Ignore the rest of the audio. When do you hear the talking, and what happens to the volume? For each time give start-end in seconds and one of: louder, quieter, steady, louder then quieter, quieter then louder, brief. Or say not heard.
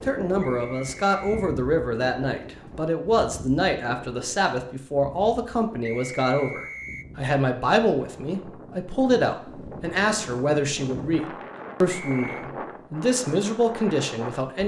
0.1-14.6 steady.